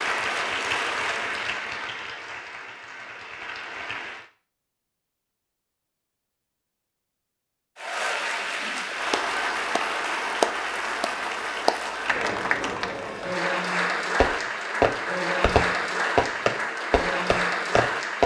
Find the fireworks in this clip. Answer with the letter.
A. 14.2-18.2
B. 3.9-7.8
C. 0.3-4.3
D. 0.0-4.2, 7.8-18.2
A.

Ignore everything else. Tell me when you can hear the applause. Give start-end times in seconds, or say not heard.
0.0-4.2, 7.8-18.2.